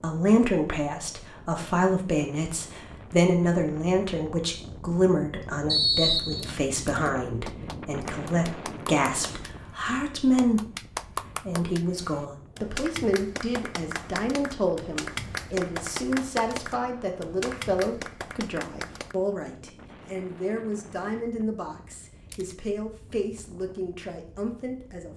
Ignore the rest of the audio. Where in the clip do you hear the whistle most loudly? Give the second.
6 s.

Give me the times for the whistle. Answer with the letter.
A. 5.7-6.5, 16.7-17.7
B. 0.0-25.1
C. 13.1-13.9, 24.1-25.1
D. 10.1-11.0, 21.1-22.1
A.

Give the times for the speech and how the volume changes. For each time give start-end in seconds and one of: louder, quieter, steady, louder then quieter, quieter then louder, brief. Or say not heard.
0.0-25.1 quieter.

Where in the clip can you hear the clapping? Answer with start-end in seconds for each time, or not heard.
7.5-19.1.